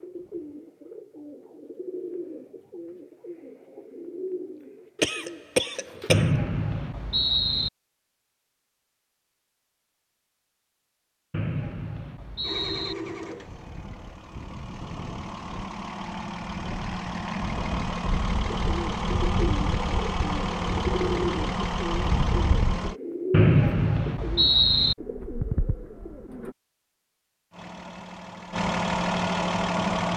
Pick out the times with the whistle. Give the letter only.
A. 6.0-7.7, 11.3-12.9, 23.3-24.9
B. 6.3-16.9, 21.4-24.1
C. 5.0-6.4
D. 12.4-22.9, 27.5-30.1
A.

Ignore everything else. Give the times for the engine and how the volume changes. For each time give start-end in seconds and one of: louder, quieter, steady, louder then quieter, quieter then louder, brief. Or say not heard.
12.4-22.9 louder
27.5-30.1 brief.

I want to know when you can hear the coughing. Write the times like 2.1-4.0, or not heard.
5.0-6.4.